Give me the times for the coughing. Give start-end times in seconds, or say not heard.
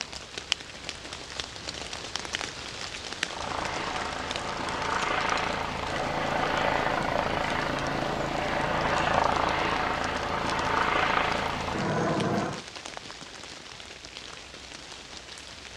not heard.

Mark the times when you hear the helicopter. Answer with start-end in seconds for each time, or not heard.
3.2-12.7.